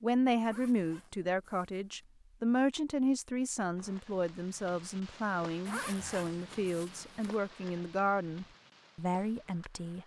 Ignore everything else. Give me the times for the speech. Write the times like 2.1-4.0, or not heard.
0.0-10.0.